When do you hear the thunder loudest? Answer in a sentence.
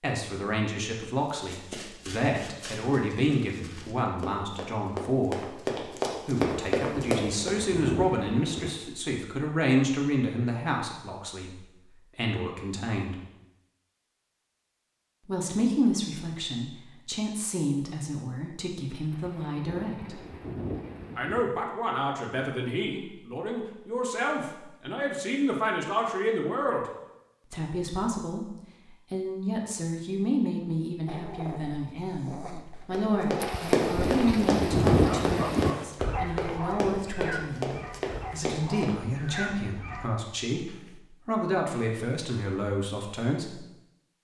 The volume of the thunder peaks at 35 seconds.